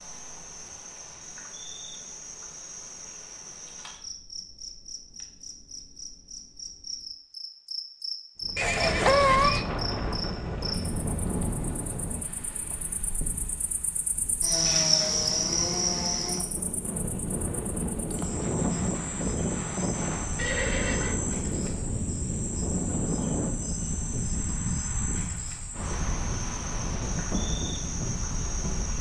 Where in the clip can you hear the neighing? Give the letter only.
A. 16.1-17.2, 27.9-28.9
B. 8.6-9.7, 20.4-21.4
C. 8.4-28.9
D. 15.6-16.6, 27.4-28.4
B.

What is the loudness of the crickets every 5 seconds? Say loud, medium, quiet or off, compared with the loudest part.
medium, medium, loud, loud, medium, medium.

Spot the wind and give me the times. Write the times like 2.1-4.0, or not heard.
8.4-28.9.